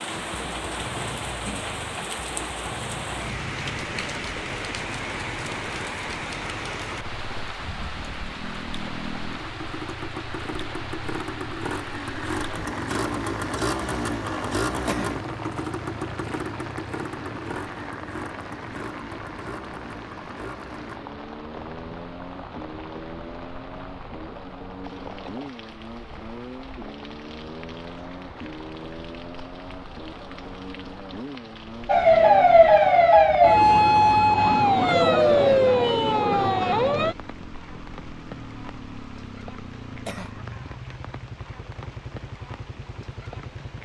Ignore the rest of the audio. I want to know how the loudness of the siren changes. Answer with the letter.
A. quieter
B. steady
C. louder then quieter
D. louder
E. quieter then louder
A.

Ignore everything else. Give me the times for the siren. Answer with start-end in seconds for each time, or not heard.
31.9-37.1.